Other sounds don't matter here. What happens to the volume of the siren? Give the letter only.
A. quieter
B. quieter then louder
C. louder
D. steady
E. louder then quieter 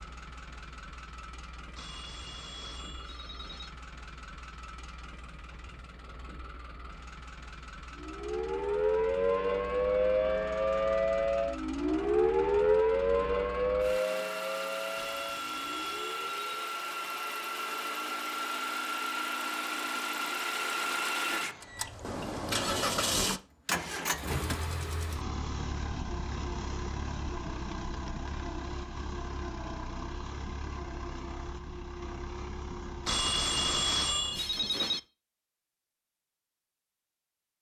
A.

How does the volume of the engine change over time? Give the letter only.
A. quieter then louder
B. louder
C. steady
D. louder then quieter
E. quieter
D.